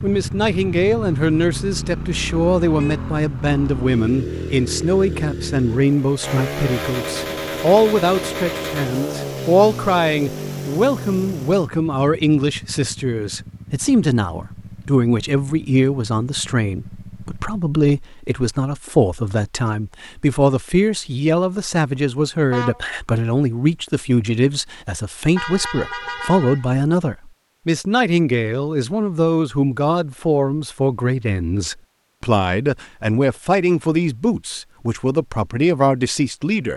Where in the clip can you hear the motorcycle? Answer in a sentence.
The motorcycle can be heard from 0.0 to 17.6 s.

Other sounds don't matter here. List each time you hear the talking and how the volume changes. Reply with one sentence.
The talking can be heard from 0.0 to 36.7 s, at a steady volume.